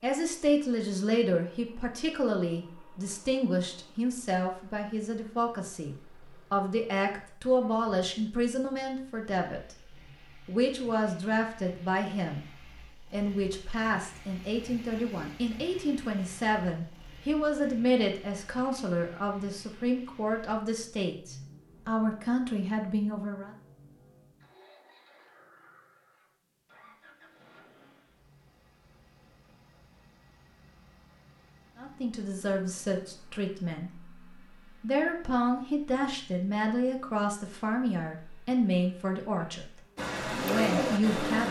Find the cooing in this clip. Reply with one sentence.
You can hear the cooing from 40.0 to 41.4 s.